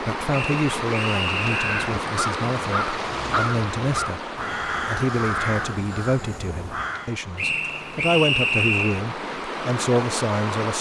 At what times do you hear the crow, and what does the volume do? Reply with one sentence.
You can hear the crow from 1.4 to 7.2 s, getting quieter.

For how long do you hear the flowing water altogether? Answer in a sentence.
The flowing water can be heard for 11 seconds in total.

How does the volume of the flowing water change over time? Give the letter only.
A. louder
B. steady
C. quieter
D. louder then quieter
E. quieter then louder
E.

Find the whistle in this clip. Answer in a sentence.
You can hear the whistle from 0.3 to 1.9 s and from 7.3 to 9.0 s.